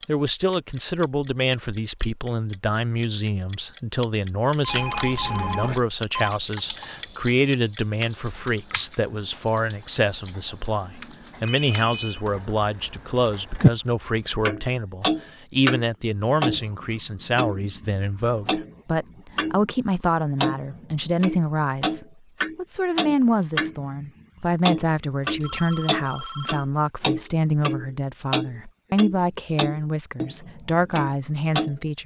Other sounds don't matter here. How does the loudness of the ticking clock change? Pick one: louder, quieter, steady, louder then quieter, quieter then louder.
quieter then louder.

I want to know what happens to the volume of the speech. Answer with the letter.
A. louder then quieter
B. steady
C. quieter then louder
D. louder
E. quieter
B.